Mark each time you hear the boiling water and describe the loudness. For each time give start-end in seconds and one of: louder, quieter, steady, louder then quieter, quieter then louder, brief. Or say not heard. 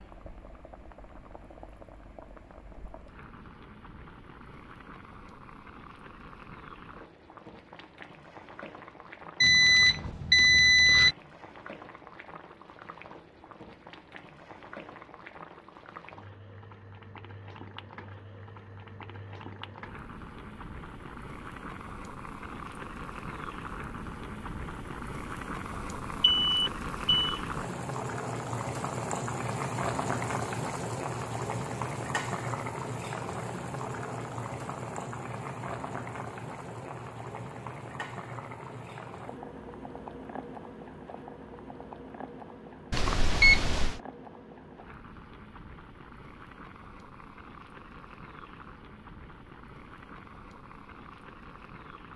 0.0-52.1 louder then quieter.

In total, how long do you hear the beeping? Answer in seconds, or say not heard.
4 s.